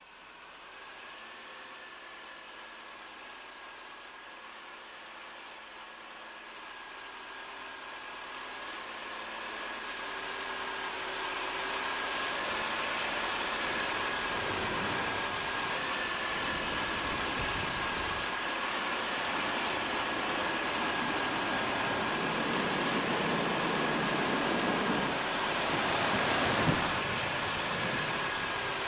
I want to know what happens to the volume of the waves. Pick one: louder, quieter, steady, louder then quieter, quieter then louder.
louder.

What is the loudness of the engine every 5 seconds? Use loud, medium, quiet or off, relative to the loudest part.
quiet, medium, loud, loud, loud, loud.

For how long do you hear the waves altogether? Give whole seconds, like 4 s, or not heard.
17 s.